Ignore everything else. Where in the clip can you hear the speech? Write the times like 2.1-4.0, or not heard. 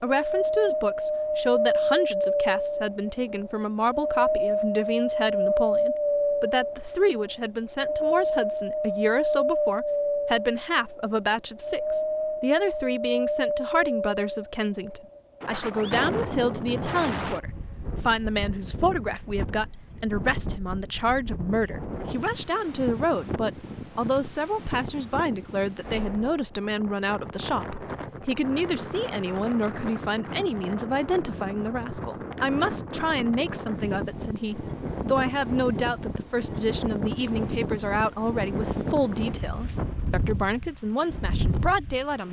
0.0-42.2.